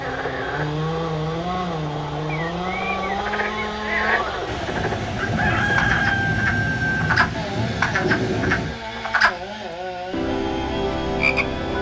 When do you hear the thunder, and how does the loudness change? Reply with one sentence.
The thunder can be heard from 4.5 to 8.8 s, at a steady volume.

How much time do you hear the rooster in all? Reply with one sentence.
You can hear the rooster for 2 seconds altogether.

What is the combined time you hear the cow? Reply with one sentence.
You can't hear the cow here.